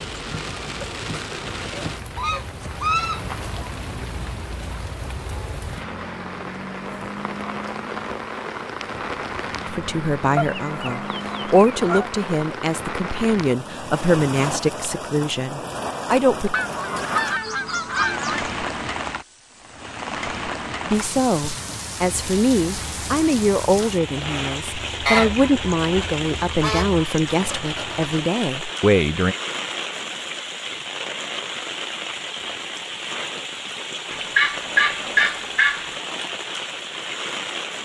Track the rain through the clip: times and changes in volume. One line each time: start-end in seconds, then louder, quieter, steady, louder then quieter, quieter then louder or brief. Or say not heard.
0.0-37.8 steady.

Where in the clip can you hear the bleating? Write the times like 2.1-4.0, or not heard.
not heard.